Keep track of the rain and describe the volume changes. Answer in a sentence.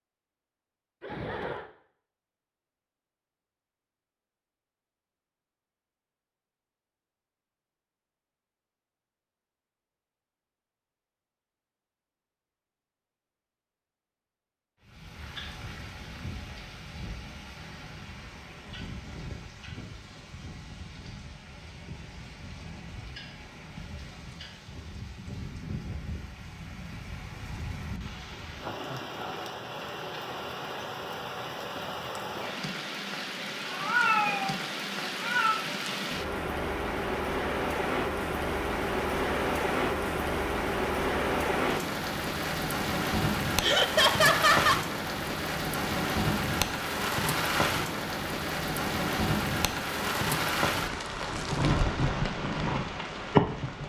The loudness of the rain goes up.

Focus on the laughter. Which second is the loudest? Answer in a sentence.
The volume of the laughter peaks at 44 seconds.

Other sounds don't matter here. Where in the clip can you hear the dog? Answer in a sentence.
The dog can't be heard in this clip.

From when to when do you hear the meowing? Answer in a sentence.
The meowing can be heard from 33.6 to 35.6 s.